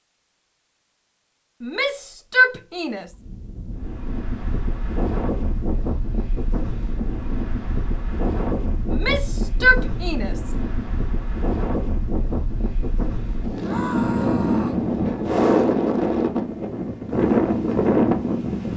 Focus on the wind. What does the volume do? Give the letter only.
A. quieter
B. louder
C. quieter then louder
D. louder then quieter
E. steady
B.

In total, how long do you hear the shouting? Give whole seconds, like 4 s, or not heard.
4 s.